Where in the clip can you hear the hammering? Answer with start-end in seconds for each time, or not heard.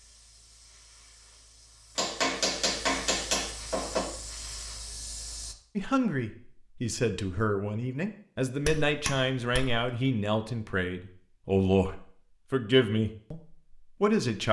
1.9-4.1, 8.6-9.9.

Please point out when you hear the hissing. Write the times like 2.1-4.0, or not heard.
0.0-5.5.